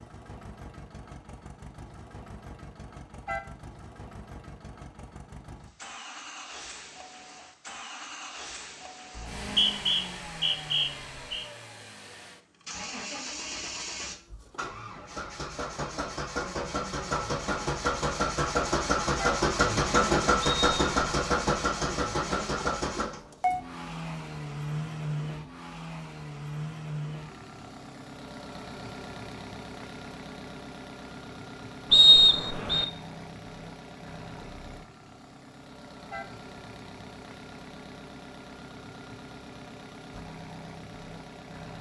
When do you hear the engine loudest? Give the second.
20 s.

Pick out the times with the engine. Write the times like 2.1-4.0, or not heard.
0.0-41.7.